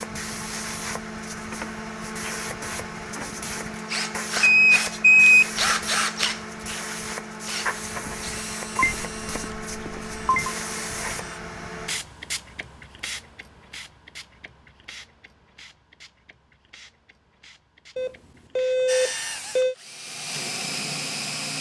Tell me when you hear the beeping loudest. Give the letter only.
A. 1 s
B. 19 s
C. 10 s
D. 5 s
D.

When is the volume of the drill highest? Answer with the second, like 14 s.
6 s.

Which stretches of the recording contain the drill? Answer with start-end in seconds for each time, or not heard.
3.0-11.4, 18.9-21.5.